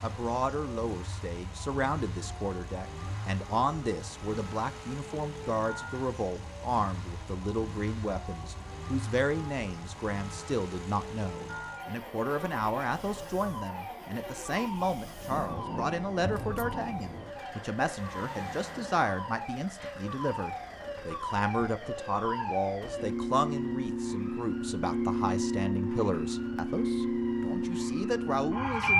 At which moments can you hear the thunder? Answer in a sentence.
You can hear the thunder from 15.3 to 17.3 s.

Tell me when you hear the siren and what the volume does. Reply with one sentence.
The siren can be heard from 0.0 to 28.9 s, getting louder.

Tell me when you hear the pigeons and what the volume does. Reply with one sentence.
You can't hear the pigeons here.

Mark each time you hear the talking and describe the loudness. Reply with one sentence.
The talking can be heard from 0.0 to 28.9 s, at a steady volume.